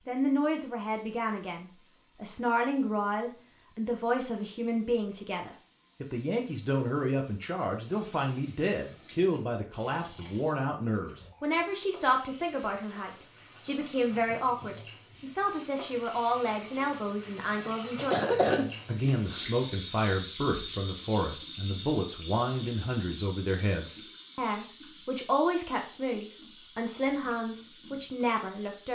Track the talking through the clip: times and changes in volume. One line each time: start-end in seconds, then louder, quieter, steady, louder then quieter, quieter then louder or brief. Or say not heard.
0.1-28.8 steady.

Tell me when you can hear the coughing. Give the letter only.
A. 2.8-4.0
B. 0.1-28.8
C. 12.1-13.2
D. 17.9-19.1
D.